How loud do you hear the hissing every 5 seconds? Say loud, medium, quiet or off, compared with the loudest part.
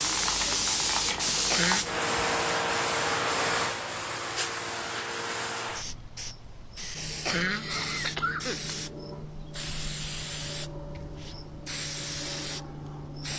loud, medium, medium.